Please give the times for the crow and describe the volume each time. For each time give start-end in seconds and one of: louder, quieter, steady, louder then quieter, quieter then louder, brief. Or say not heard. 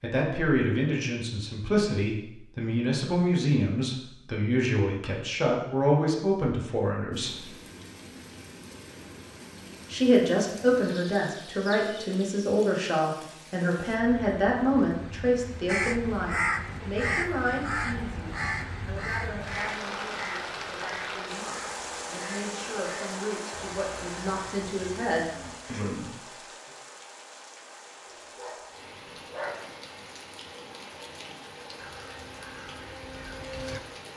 15.7-25.9 quieter
31.8-33.8 brief.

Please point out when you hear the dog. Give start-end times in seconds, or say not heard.
28.1-29.6.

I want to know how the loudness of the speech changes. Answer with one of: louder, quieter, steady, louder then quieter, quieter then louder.
quieter.